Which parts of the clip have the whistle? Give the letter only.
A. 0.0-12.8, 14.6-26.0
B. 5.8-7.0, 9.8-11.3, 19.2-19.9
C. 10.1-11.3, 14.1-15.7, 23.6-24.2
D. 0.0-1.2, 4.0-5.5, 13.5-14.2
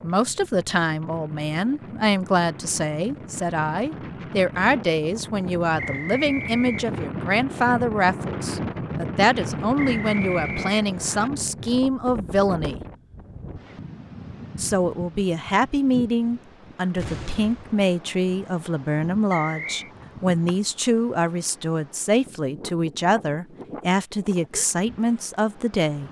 B.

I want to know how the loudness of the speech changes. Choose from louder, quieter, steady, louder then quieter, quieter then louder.
steady.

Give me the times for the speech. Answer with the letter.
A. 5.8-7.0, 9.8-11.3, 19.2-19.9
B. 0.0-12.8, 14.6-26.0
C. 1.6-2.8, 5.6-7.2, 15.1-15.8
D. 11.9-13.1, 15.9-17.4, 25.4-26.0
B.